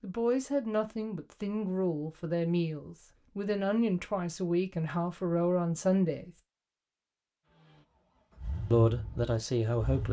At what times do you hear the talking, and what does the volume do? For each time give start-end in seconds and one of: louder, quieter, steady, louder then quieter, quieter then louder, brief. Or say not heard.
0.0-6.3 steady
8.7-10.0 brief.